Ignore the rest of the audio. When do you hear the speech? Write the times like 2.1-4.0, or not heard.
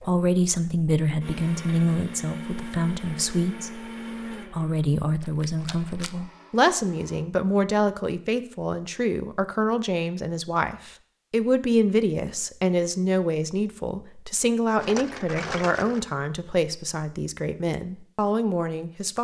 0.0-19.1.